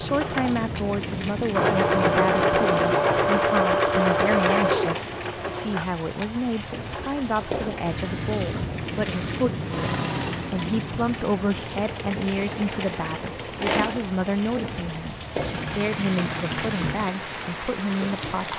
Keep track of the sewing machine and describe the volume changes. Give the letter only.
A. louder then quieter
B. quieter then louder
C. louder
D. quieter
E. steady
D.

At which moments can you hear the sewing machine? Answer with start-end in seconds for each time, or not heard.
0.0-18.5.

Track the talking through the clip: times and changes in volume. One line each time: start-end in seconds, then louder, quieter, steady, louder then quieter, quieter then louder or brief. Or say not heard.
0.0-9.9 steady
10.5-18.5 steady.